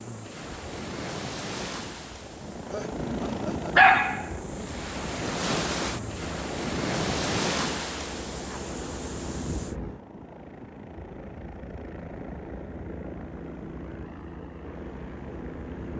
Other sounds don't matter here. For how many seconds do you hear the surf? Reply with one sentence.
You can hear the surf for 10 seconds altogether.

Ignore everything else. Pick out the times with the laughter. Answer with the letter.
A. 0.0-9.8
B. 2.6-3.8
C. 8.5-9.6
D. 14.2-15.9
B.